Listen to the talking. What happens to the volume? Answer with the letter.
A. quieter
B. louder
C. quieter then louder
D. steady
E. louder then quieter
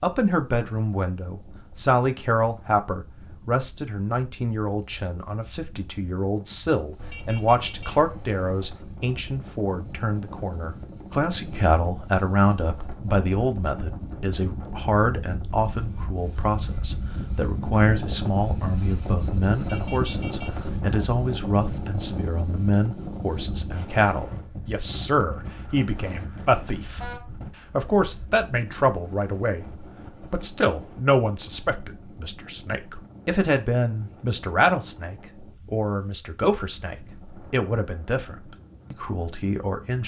D.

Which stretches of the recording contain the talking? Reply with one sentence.
The talking can be heard from 0.0 to 40.0 s.